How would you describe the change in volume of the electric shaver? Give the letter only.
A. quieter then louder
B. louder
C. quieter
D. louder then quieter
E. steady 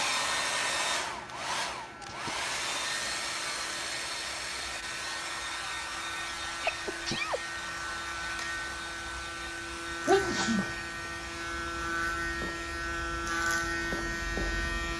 B.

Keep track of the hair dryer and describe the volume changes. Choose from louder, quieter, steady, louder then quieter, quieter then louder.
quieter.